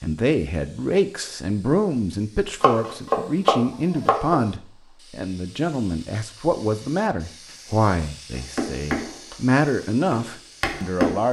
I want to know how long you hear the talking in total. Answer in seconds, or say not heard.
11 s.